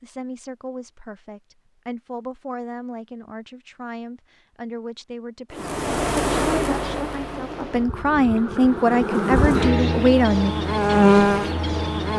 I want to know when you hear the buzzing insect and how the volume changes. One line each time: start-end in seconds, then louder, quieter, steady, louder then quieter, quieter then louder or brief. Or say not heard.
5.5-12.1 quieter then louder.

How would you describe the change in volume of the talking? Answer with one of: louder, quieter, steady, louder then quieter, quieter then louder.
louder.